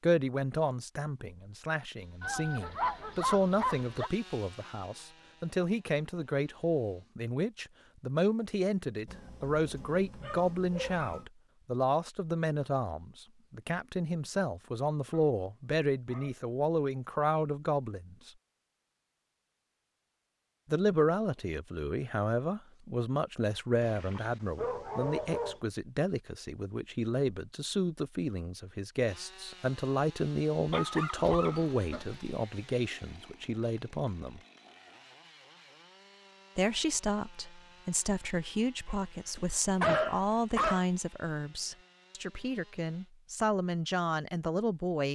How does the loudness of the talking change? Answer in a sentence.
The volume of the talking stays about the same.